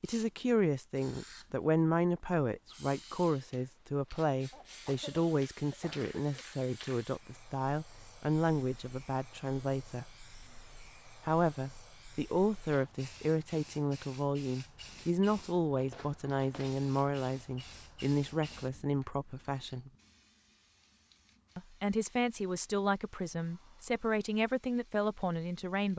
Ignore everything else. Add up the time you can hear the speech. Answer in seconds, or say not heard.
23 s.